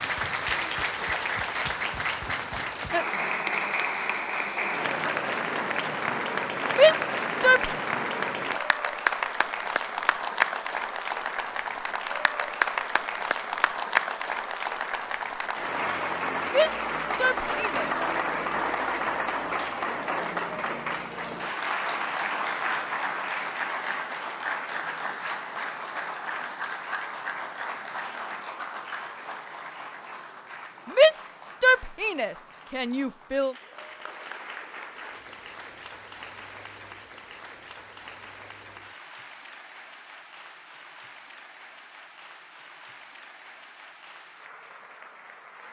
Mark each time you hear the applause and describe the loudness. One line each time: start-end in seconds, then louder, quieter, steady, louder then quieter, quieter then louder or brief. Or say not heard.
0.0-45.6 quieter.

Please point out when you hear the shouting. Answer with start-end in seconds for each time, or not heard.
6.7-7.7, 16.4-17.9, 30.9-33.5.